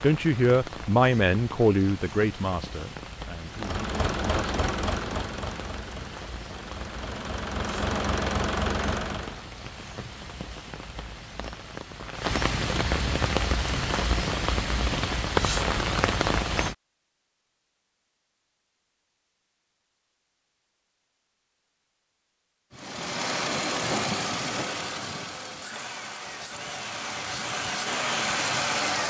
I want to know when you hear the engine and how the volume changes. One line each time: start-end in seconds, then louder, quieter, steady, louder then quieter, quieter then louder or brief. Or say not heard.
3.5-9.4 quieter then louder
22.7-29.0 quieter then louder.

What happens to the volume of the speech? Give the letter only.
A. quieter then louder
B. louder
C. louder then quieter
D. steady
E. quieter
E.